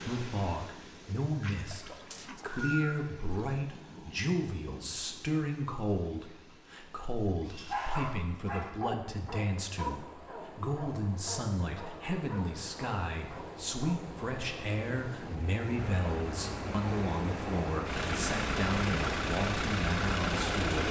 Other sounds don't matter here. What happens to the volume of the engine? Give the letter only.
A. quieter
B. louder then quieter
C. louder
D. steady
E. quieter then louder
C.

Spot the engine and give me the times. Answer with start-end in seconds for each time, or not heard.
15.7-20.8.